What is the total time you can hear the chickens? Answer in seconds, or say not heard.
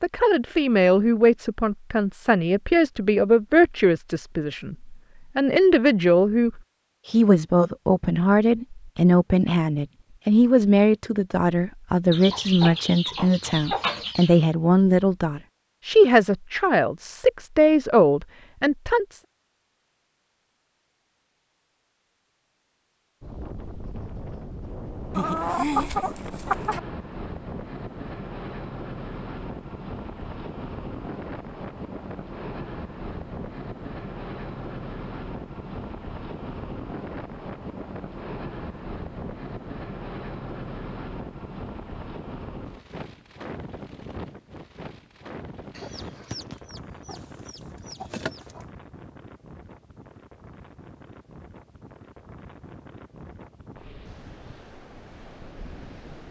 7 s.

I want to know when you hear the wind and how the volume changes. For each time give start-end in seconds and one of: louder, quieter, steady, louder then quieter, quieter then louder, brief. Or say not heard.
23.2-56.2 quieter.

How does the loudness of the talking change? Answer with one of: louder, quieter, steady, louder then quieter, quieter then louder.
steady.